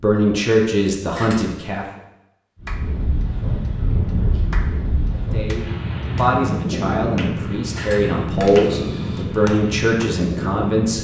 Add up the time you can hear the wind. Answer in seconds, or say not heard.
8 s.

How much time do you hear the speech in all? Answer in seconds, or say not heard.
8 s.